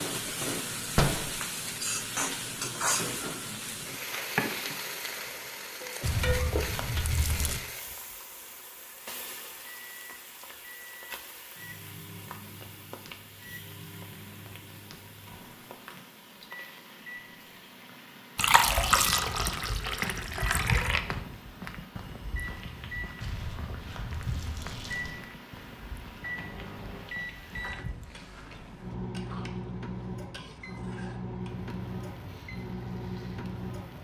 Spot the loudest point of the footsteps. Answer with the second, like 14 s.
21 s.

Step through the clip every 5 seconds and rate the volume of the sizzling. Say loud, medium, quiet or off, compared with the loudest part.
loud, medium, quiet, quiet, quiet, quiet, quiet.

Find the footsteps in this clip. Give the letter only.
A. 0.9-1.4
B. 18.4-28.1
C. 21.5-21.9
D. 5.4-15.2
B.